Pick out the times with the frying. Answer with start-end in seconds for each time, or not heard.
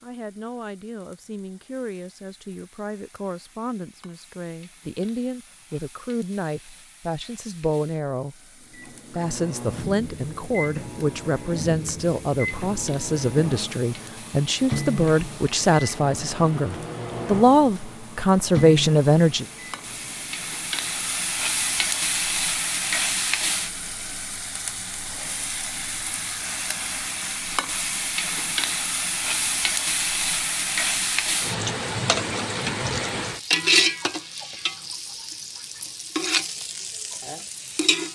0.0-38.1.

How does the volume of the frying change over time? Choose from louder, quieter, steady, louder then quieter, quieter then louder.
louder.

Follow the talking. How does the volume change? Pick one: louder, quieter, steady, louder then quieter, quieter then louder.
louder.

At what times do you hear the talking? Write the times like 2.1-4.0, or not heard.
0.0-8.3, 9.1-19.4.